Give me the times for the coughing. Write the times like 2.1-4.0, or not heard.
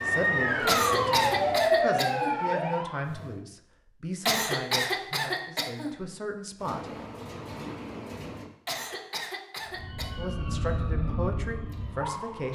0.7-2.4, 4.2-6.0, 8.7-10.1.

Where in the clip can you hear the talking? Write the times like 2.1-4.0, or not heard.
0.0-6.9, 10.2-12.5.